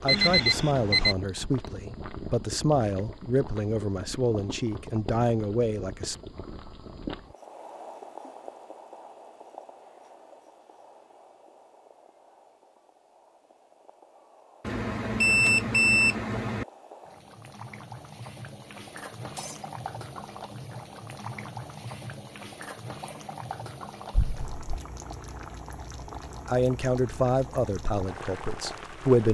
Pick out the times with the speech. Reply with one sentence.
You can hear the speech from 0.0 to 6.2 s and from 26.4 to 29.2 s.